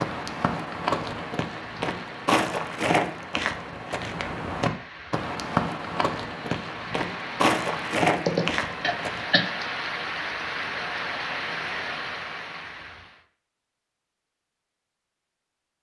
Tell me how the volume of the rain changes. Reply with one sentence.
The volume of the rain goes up.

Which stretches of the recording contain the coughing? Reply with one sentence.
You can hear the coughing from 8.2 to 9.4 s.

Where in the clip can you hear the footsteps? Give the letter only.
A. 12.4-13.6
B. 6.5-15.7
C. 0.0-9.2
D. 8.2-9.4
C.